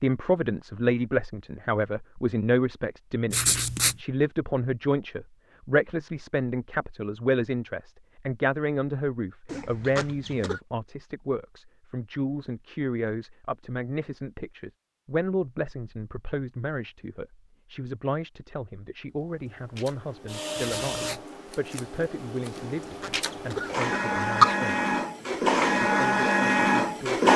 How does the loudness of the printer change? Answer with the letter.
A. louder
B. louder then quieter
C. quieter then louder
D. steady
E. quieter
C.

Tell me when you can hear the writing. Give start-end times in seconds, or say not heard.
3.3-4.0, 20.6-21.2.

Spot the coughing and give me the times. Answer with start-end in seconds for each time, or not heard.
9.4-10.6, 22.6-24.6.